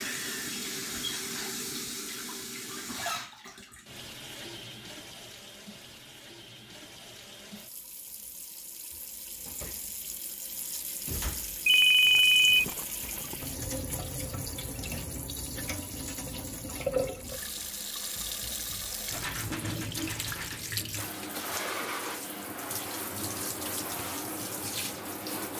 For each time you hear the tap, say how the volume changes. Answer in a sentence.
You can hear the tap from 0.0 to 25.5 s, getting quieter then louder.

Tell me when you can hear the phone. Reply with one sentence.
The phone can be heard from 11.7 to 12.7 s.